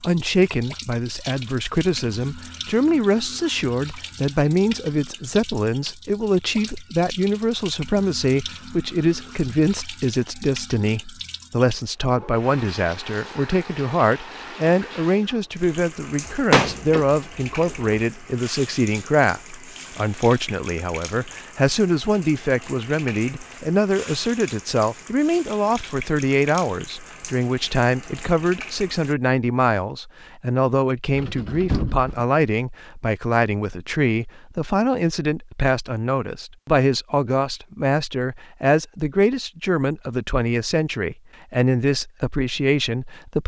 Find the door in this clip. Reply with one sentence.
You can hear the door from 16.3 to 18.0 s and from 31.1 to 32.2 s.